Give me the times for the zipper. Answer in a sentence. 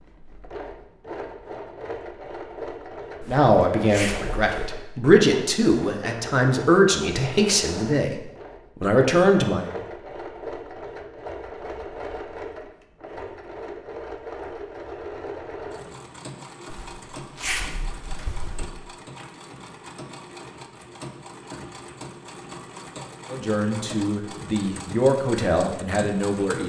You can hear the zipper from 3.2 to 4.6 s and from 16.7 to 18.7 s.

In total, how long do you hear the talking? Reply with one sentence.
You can hear the talking for 9 seconds altogether.